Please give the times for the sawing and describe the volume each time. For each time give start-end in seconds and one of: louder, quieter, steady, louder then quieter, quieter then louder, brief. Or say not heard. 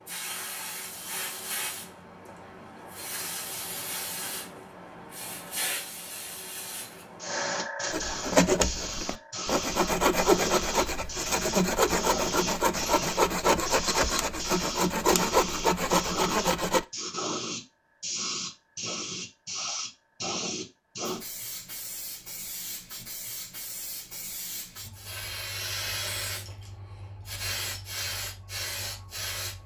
7.9-16.9 steady.